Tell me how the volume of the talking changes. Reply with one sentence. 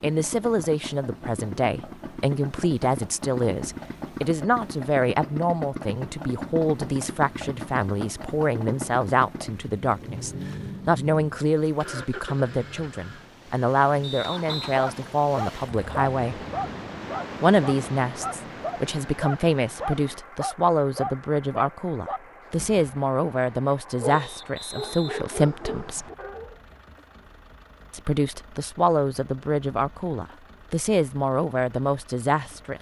The volume of the talking stays about the same.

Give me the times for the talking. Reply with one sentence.
The talking can be heard from 0.0 to 16.4 s, from 17.4 to 26.1 s and from 27.9 to 32.7 s.